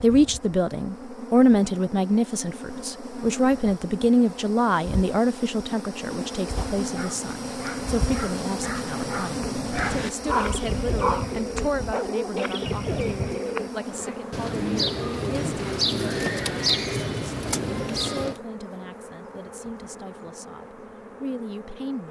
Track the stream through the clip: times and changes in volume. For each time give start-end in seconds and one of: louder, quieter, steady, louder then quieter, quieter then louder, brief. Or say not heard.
not heard.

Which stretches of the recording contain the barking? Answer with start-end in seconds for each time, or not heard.
6.7-12.6.